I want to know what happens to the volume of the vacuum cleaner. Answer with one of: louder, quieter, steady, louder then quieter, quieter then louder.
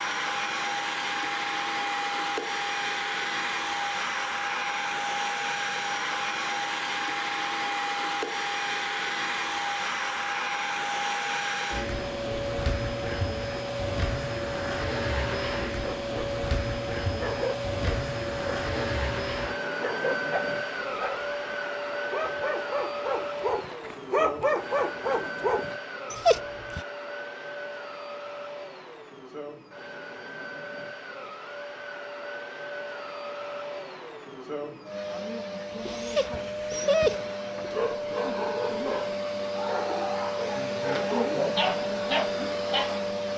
quieter then louder.